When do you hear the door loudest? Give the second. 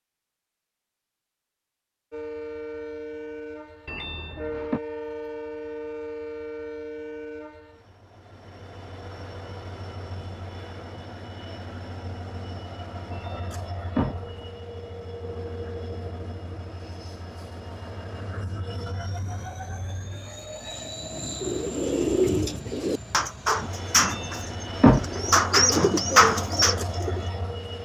25 s.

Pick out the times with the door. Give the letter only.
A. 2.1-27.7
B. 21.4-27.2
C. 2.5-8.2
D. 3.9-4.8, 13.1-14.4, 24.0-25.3
D.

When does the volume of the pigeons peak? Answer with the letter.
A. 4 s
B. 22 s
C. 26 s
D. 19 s
C.